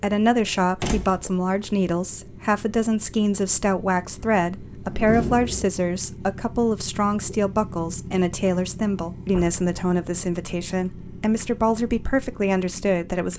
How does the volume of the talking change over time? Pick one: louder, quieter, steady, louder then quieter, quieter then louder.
steady.